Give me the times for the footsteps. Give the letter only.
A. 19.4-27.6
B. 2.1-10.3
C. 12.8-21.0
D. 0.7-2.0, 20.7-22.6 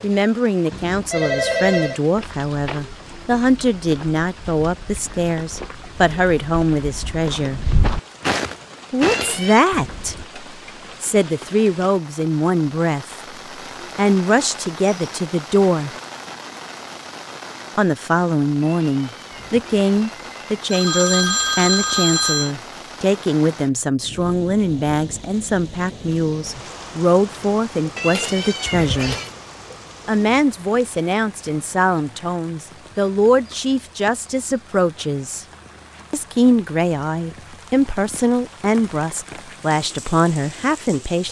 B.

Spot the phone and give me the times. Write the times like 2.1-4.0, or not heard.
0.7-2.0, 20.7-22.6.